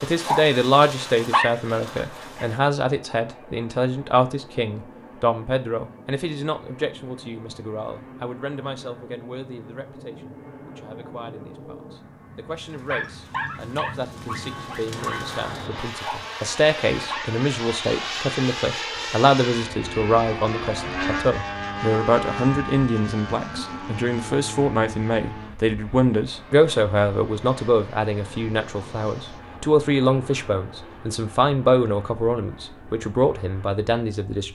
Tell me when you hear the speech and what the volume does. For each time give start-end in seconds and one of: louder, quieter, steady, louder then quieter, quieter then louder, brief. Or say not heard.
0.0-34.5 quieter then louder.